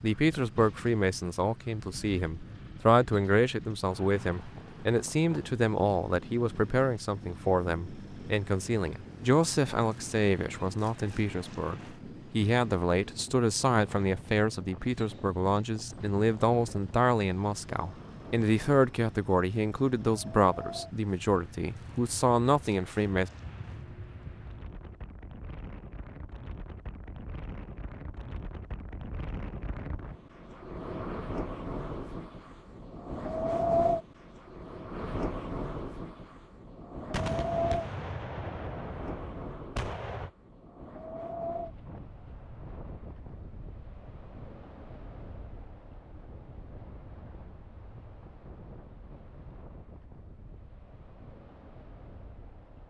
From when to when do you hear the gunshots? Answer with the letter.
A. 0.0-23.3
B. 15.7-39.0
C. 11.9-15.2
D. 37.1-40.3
D.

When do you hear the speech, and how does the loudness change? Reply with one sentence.
You can hear the speech from 0.0 to 23.3 s, at a steady volume.